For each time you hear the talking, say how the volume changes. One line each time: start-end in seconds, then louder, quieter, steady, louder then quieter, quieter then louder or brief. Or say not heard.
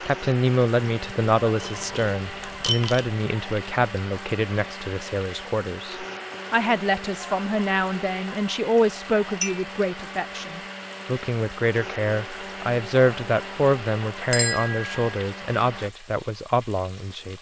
0.0-17.3 steady.